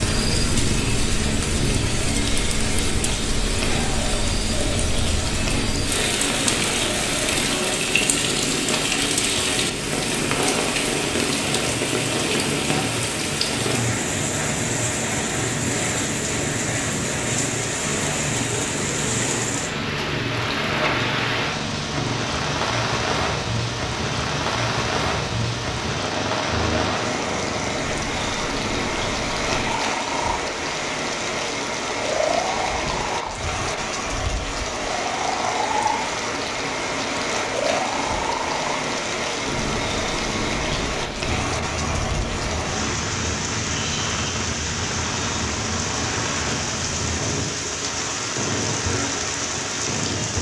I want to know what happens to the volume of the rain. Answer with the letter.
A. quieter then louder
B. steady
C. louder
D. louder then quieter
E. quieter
B.